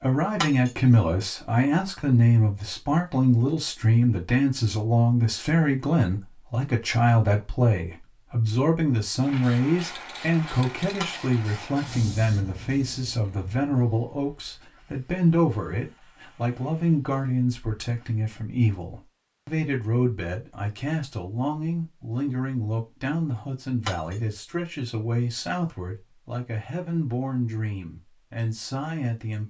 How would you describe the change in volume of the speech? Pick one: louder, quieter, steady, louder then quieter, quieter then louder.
quieter.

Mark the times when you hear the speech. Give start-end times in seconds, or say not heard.
0.0-29.4.